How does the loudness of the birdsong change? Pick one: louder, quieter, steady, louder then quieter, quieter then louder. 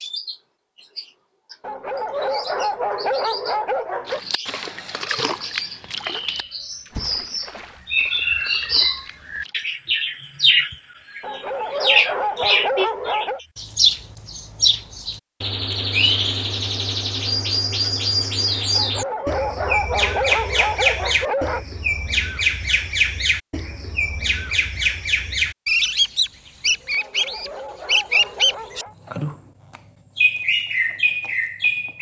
louder.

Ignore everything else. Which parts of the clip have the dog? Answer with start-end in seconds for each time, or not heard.
1.6-4.2, 11.2-13.4, 18.7-21.6, 26.9-28.9.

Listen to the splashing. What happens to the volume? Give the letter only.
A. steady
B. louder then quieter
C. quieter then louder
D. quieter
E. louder
D.